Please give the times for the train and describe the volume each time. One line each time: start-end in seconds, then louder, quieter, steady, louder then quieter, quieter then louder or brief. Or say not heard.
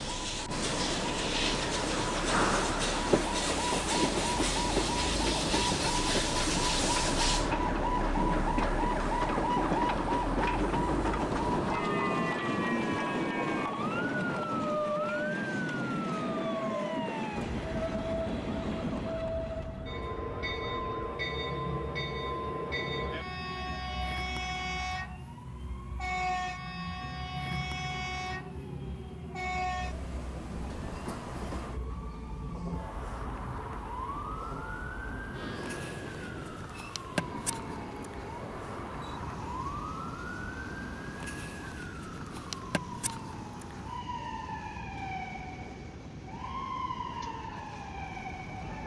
0.0-48.8 quieter.